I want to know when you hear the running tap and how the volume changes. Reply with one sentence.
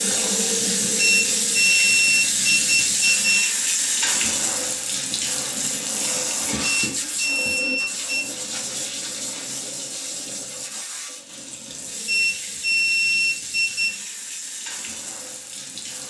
The running tap can be heard from 0.0 to 16.0 s, getting quieter.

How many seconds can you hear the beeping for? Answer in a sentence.
The beeping can be heard for 6 seconds in total.